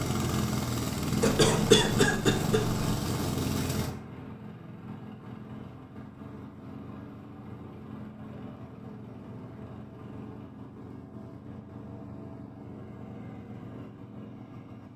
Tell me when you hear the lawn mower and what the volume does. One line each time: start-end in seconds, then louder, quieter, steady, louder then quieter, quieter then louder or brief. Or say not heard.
0.0-14.9 quieter.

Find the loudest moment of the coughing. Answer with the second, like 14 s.
2 s.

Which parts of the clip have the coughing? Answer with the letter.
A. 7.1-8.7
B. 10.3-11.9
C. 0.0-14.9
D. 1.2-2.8
D.